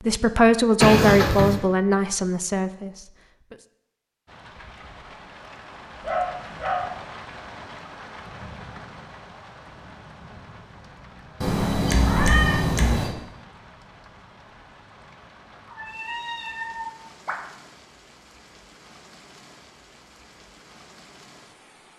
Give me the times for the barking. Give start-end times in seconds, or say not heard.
6.0-7.0.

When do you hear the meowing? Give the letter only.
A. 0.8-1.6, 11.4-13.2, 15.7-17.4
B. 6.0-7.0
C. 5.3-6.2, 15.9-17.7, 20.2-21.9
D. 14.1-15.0
A.